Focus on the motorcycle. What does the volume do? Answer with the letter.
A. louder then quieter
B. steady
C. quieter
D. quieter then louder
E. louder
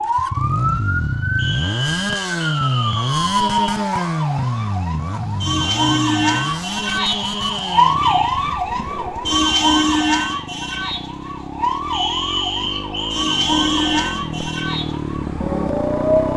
D.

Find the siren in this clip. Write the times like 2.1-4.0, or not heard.
0.0-16.3.